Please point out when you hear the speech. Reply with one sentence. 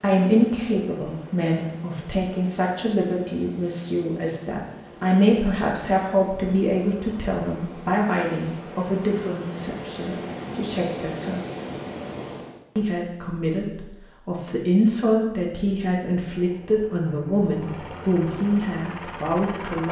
The speech can be heard from 0.0 to 11.4 s and from 12.8 to 19.8 s.